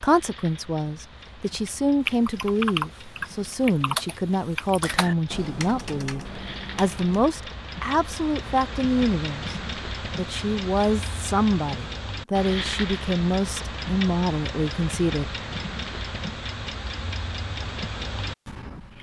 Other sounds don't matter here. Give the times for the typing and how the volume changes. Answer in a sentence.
You can hear the typing from 2.0 to 7.3 s, getting quieter.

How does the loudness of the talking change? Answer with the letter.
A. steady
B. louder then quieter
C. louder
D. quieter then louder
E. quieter
A.